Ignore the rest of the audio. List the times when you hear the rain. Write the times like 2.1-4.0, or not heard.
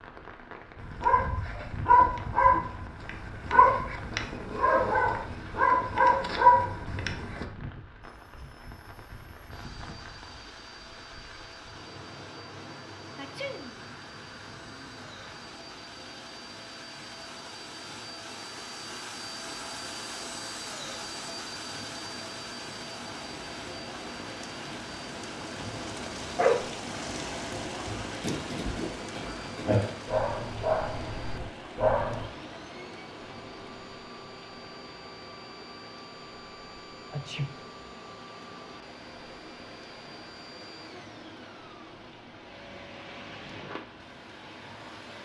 0.0-45.2.